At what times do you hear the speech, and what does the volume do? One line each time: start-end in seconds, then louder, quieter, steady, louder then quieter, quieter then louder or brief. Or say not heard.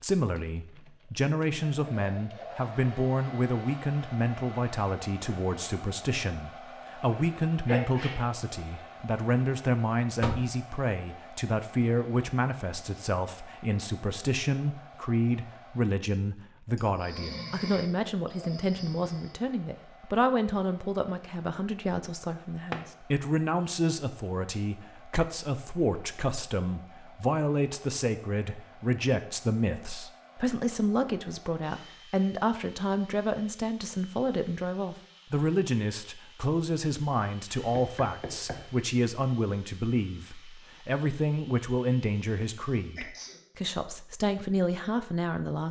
0.0-45.6 steady.